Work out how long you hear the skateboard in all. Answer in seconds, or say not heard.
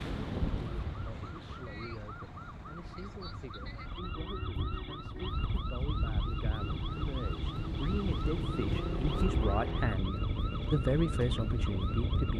not heard.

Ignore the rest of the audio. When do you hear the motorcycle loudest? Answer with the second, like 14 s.
9 s.